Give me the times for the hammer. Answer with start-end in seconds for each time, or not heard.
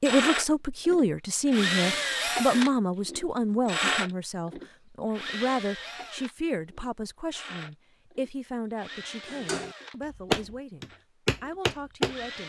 9.2-12.2.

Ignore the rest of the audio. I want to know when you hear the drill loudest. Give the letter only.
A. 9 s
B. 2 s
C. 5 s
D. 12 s
B.